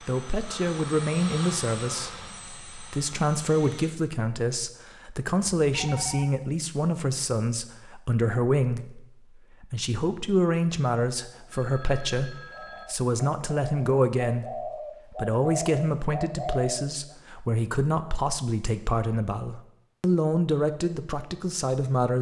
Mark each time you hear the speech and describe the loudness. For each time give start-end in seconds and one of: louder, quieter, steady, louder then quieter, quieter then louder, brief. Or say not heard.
0.0-22.1 steady.